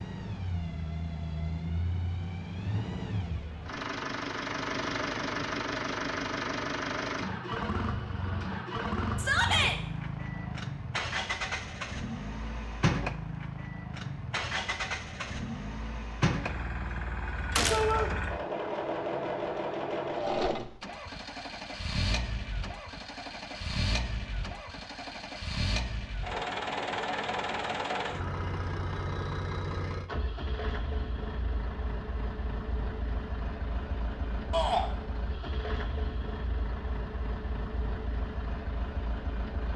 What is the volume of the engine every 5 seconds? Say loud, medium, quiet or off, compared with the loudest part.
loud, loud, loud, loud, loud, loud, medium, medium.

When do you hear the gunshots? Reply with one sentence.
You can hear the gunshots from 17.6 to 18.1 s.